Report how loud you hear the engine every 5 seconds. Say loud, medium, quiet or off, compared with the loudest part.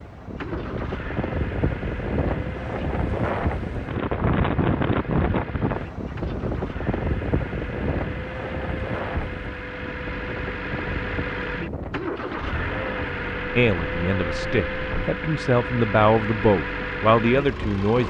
medium, medium, loud, loud.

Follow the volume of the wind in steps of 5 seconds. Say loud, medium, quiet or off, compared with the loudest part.
loud, loud, medium, off.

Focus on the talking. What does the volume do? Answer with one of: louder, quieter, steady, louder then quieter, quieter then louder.
louder.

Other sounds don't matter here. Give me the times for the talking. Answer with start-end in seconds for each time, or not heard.
13.6-18.0.